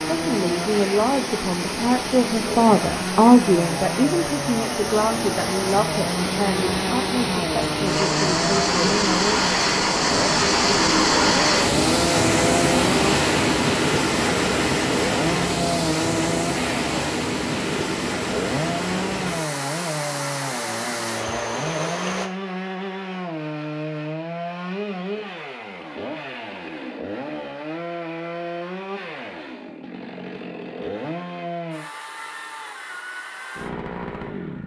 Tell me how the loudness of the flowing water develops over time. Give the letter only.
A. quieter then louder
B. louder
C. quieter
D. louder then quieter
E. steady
D.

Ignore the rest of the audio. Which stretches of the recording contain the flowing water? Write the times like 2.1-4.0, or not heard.
0.0-22.3.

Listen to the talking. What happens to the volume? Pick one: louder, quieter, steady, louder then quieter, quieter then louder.
louder then quieter.